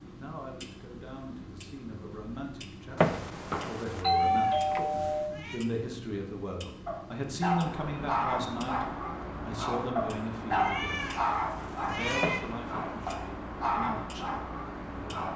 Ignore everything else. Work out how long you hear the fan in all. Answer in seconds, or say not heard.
8 s.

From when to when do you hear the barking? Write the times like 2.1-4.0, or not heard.
6.8-15.3.